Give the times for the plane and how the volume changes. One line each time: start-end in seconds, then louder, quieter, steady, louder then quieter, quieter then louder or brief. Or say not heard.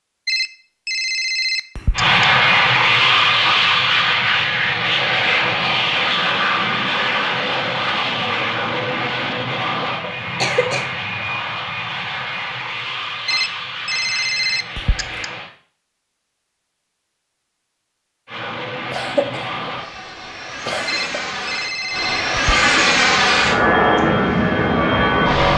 1.9-15.5 quieter
18.2-25.5 louder.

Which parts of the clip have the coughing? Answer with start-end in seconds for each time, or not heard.
10.0-10.9, 18.9-19.4, 20.6-21.1.